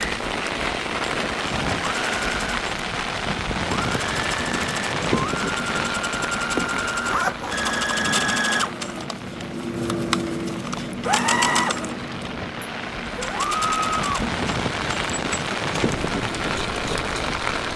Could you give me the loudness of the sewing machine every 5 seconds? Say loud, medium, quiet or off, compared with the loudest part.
medium, loud, loud, medium.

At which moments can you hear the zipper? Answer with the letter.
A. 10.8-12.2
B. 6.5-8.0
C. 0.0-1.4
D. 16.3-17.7
B.